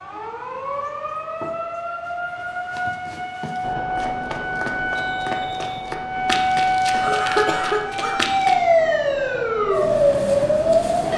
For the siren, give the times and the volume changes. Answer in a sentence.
You can hear the siren from 0.0 to 11.1 s, getting louder.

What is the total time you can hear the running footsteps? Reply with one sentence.
You can hear the running footsteps for 8 seconds altogether.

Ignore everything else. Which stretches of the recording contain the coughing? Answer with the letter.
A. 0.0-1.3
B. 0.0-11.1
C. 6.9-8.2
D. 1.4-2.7
C.